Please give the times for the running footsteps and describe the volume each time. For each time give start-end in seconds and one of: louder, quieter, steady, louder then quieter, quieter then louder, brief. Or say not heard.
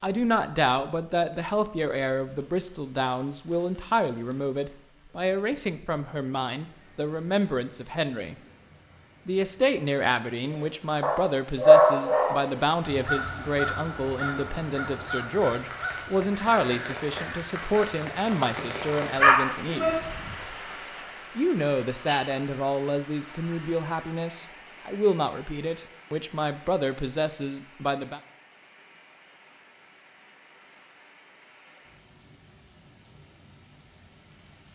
not heard.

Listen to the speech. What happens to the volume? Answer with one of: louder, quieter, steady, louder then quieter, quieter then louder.
steady.